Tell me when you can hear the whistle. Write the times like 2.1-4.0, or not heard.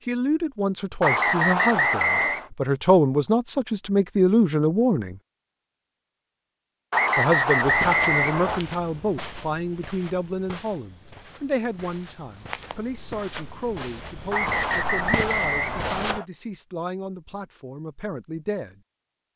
1.0-2.5, 6.9-8.7, 14.3-16.2.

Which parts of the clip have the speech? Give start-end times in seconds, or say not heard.
0.1-5.2, 7.2-18.8.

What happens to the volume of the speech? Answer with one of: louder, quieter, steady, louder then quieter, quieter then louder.
quieter.